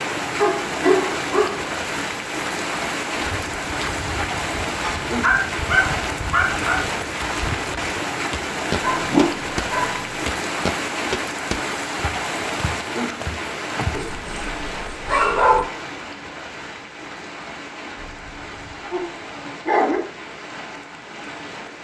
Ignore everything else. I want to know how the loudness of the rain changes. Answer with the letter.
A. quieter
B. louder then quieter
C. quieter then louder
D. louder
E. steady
A.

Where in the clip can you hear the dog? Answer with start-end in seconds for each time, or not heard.
0.4-2.0, 4.8-6.8, 8.8-10.2, 13.9-15.7, 17.9-20.0.